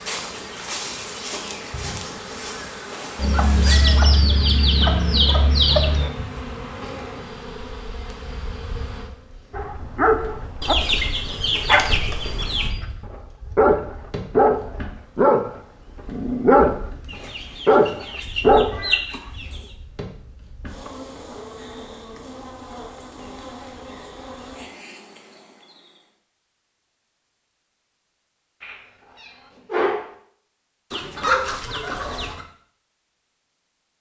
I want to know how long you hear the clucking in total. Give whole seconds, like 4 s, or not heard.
9 s.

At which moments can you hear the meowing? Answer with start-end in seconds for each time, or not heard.
3.2-5.2, 28.6-30.1.